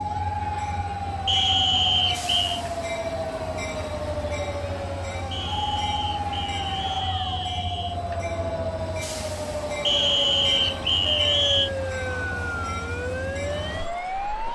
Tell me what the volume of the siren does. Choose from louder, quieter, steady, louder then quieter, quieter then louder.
steady.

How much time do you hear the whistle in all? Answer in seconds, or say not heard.
6 s.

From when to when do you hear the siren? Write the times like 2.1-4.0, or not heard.
0.0-14.5.